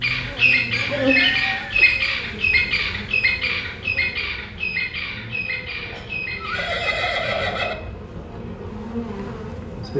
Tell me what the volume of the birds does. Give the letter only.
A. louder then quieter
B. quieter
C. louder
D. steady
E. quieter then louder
B.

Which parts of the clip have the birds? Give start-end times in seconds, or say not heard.
0.0-7.5.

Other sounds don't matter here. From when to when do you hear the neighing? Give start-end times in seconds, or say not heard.
0.7-1.9, 5.9-7.8.